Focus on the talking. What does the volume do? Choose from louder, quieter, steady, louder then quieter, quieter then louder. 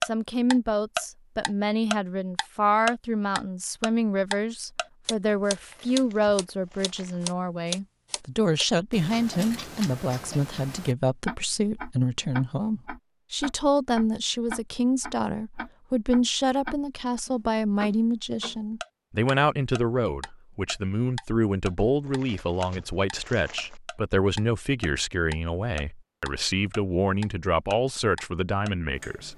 steady.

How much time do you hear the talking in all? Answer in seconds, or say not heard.
29 s.